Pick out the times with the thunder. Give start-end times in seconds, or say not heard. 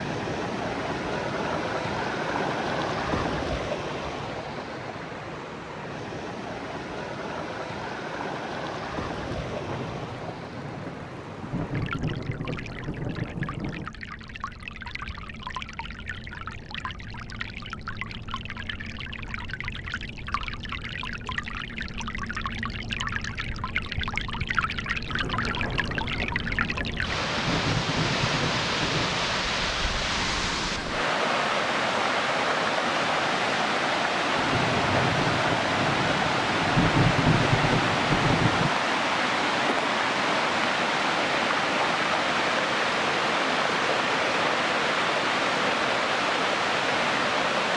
9.1-13.9, 25.1-29.2, 34.4-38.7.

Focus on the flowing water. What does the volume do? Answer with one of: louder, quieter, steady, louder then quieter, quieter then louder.
quieter then louder.